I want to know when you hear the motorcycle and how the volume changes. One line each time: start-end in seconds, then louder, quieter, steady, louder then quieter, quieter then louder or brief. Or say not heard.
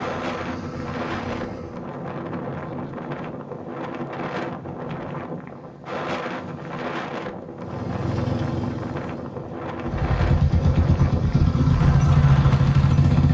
0.0-1.8 brief
7.6-13.2 quieter then louder.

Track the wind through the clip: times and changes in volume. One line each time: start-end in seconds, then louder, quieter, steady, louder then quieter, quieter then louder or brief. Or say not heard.
0.0-13.2 steady.